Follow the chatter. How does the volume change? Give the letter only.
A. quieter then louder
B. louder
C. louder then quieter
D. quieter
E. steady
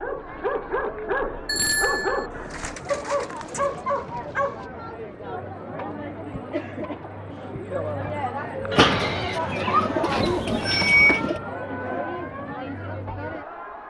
B.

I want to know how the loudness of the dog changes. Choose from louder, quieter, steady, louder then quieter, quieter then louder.
steady.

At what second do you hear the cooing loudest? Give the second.
9 s.